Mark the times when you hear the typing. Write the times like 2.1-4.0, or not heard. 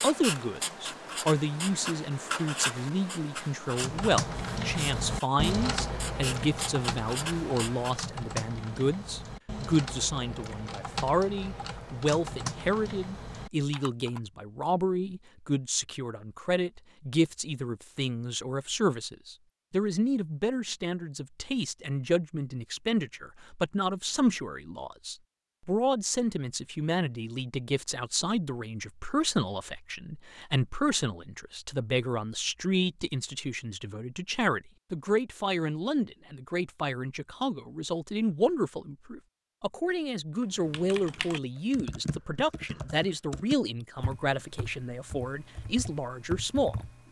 3.7-14.2, 40.4-47.0.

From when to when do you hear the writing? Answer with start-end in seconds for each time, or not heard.
0.0-8.1.